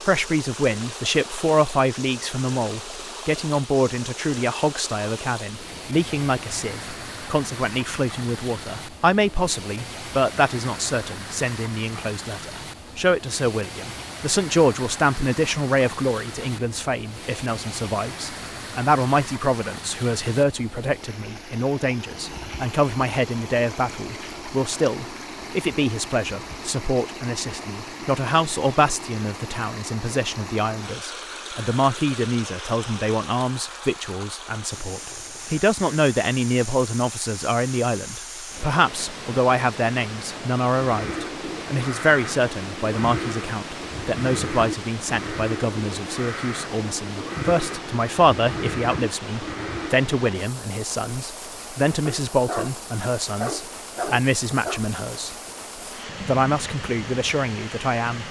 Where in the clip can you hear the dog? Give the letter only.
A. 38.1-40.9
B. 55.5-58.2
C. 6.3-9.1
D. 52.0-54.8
D.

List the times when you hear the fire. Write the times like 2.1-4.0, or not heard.
not heard.